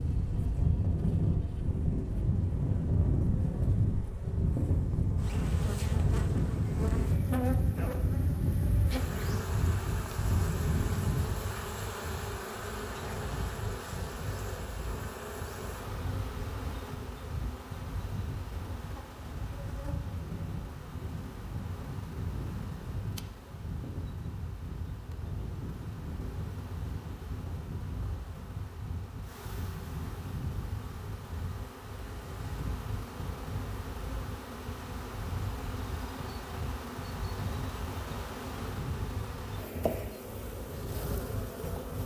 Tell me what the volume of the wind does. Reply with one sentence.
The volume of the wind goes down.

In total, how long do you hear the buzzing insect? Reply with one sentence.
You can hear the buzzing insect for 42 seconds altogether.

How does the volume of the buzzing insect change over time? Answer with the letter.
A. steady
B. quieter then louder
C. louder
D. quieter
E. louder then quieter
B.